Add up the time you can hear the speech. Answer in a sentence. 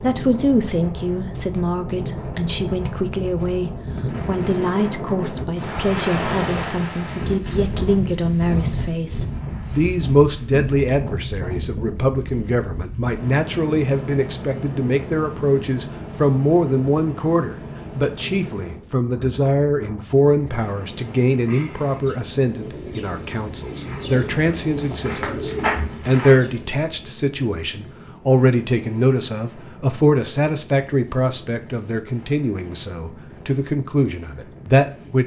You can hear the speech for 35 seconds altogether.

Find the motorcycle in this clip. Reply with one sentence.
You can't hear the motorcycle here.